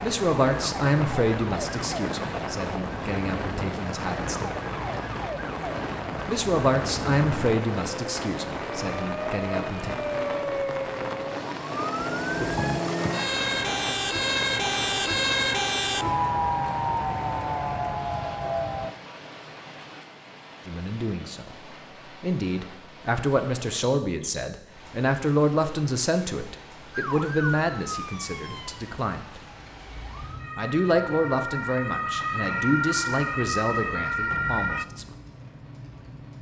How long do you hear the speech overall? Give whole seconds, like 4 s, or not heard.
22 s.